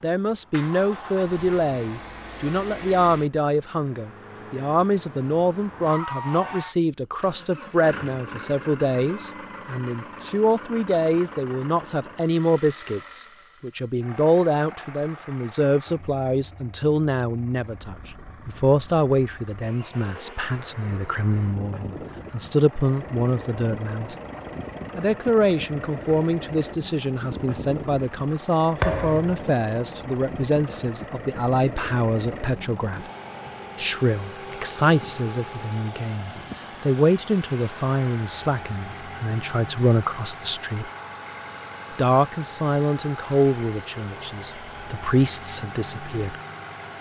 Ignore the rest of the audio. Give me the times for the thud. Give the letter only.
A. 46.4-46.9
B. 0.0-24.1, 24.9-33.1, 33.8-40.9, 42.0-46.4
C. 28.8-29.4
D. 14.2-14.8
C.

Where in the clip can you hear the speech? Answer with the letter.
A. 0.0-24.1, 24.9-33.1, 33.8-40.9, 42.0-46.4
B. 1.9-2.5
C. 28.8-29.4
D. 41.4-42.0
A.